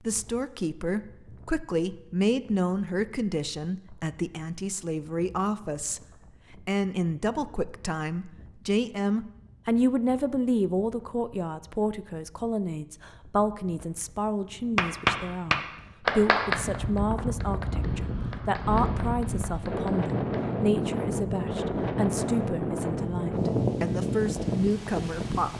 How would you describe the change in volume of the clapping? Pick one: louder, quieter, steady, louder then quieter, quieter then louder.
quieter.